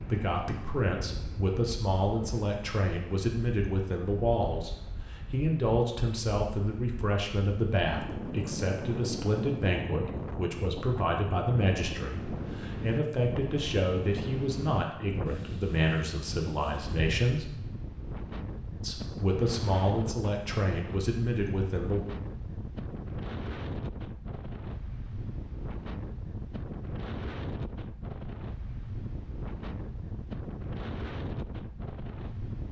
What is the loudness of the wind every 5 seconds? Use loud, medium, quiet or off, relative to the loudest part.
medium, loud, loud, loud, loud, loud, loud.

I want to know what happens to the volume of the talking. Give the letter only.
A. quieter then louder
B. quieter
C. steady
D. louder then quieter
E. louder
C.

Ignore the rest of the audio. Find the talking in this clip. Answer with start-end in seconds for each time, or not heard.
0.1-17.4, 18.8-22.0.